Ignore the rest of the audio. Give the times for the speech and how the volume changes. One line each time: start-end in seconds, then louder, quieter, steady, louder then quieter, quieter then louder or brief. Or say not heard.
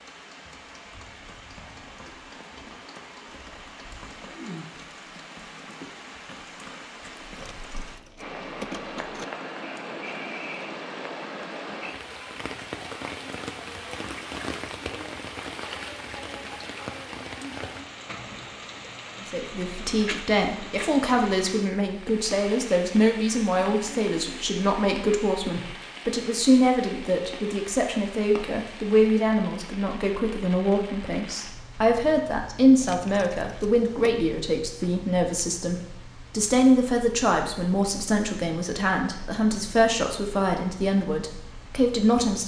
19.2-42.4 steady.